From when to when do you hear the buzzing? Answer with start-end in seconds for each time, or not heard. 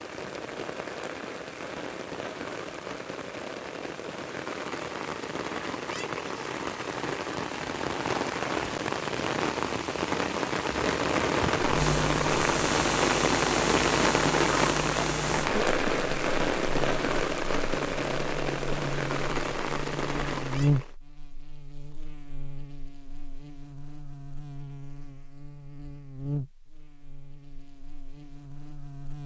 11.6-29.2.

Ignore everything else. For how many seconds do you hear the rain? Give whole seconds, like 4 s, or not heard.
21 s.